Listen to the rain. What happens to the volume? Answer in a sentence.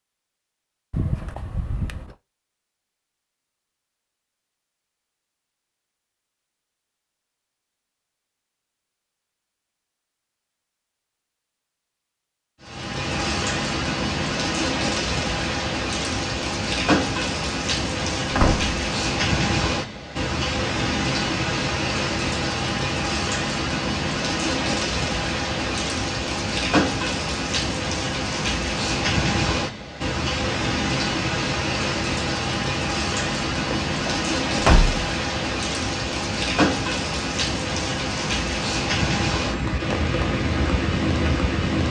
The volume of the rain stays about the same.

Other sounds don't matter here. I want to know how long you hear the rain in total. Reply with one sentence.
You can hear the rain for 29 seconds altogether.